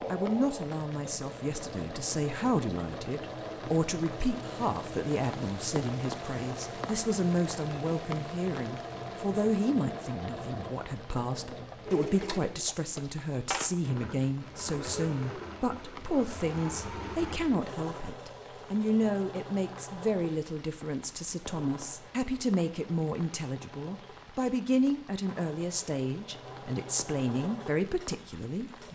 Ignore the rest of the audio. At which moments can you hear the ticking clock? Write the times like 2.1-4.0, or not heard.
not heard.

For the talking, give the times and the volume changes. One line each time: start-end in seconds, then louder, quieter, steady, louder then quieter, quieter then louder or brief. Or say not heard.
0.1-28.8 steady.